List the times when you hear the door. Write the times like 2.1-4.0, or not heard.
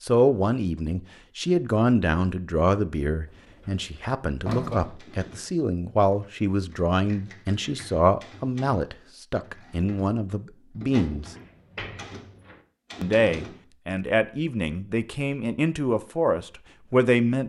3.2-5.0, 11.3-12.6.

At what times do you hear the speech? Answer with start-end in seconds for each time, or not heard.
0.0-11.2, 13.0-17.4.